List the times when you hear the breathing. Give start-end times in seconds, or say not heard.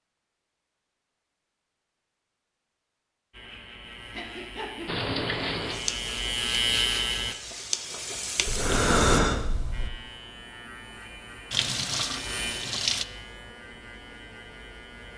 4.1-4.8, 8.4-9.9.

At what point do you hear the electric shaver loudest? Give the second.
7 s.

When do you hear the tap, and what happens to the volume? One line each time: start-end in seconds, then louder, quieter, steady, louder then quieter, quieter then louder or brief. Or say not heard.
4.8-9.2 quieter then louder
11.5-13.1 brief.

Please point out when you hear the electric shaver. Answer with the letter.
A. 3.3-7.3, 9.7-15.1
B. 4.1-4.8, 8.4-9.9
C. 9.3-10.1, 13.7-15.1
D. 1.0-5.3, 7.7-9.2
A.